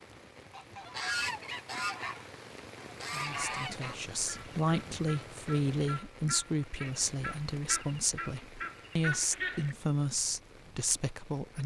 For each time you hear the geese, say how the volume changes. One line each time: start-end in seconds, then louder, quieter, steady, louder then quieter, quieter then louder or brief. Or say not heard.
0.5-9.8 quieter then louder.